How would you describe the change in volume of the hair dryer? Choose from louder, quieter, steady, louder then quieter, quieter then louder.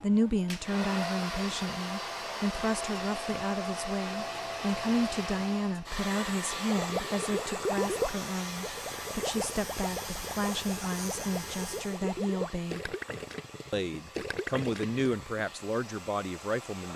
quieter.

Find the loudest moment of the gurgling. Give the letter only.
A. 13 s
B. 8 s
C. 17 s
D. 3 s
B.